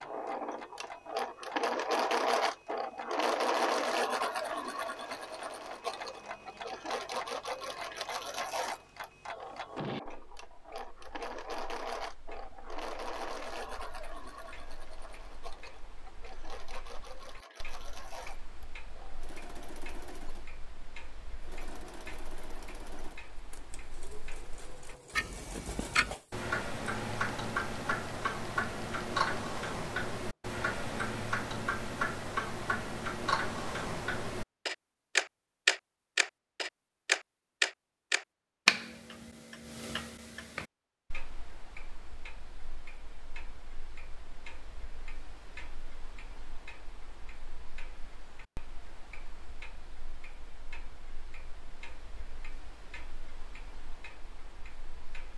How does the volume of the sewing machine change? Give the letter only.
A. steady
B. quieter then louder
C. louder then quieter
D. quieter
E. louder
D.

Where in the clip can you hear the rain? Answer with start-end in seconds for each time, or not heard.
not heard.